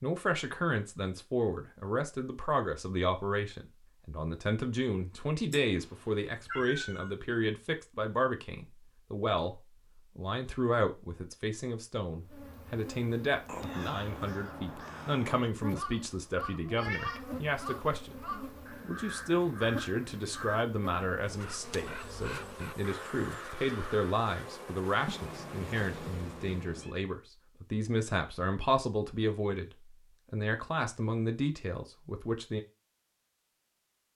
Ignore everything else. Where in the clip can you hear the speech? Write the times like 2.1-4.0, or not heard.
0.0-18.2, 18.8-29.7, 30.3-32.6.